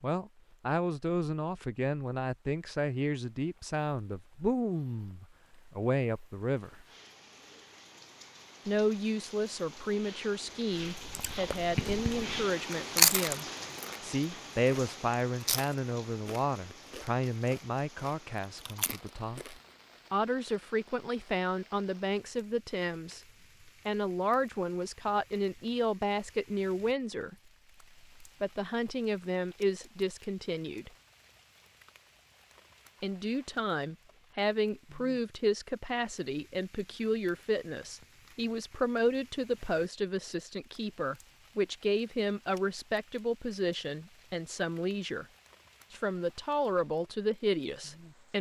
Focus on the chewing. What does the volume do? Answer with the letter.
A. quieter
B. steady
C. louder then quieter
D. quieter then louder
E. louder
C.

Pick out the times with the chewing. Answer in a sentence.
You can hear the chewing from 10.9 to 14.0 s and from 14.7 to 19.6 s.